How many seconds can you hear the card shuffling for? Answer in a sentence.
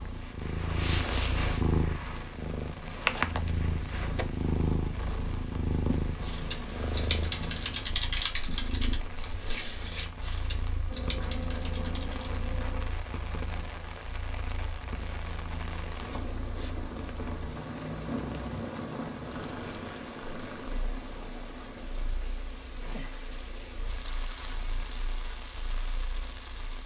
The card shuffling can be heard for 2 seconds in total.